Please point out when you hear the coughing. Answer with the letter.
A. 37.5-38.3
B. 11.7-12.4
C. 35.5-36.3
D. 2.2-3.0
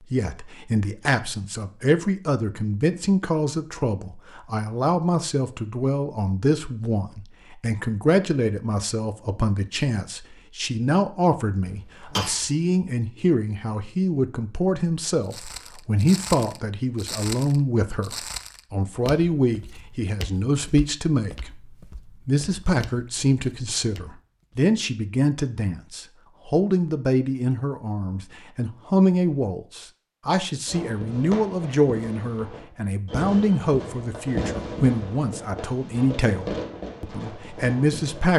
B.